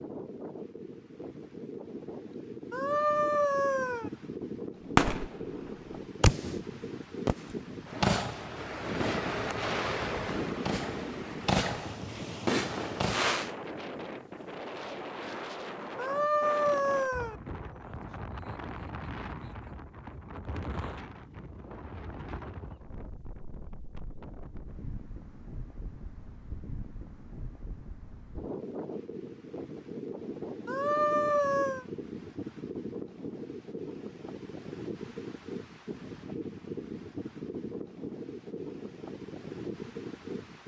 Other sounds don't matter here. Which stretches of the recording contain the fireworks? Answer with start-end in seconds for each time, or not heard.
5.0-13.6.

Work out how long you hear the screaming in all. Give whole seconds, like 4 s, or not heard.
4 s.